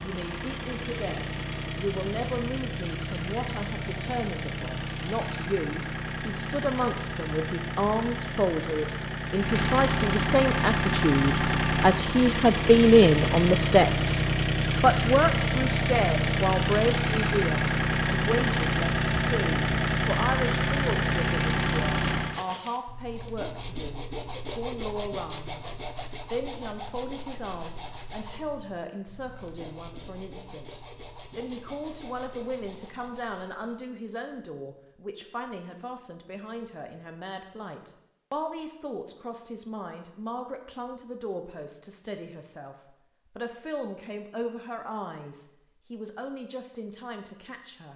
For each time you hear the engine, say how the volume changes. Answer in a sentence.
The engine can be heard from 0.0 to 22.4 s, getting louder.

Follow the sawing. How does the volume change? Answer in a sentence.
The loudness of the sawing goes down.